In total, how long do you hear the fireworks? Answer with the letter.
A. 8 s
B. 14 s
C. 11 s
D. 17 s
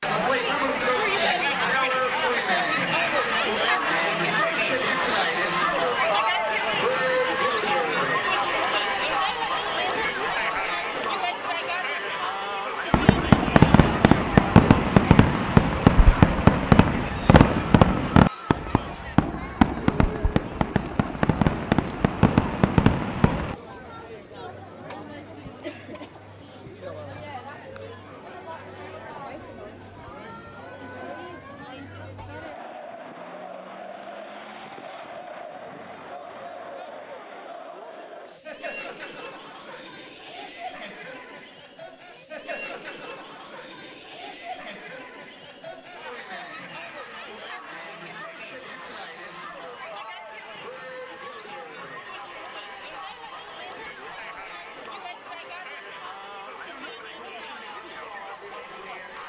C.